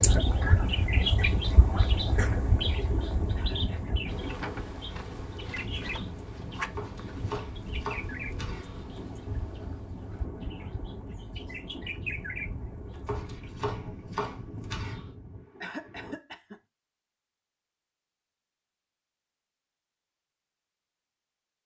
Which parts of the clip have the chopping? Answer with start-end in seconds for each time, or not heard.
6.8-8.9, 13.1-15.1.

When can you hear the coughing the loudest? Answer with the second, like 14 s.
16 s.